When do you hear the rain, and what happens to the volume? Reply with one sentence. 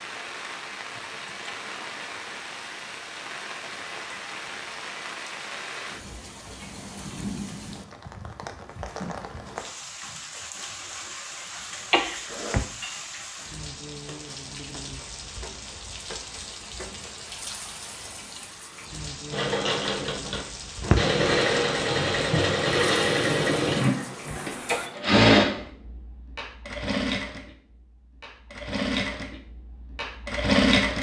You can hear the rain from 0.0 to 24.9 s, at a steady volume.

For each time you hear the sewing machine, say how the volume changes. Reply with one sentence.
The sewing machine can be heard from 19.3 to 30.9 s, getting quieter.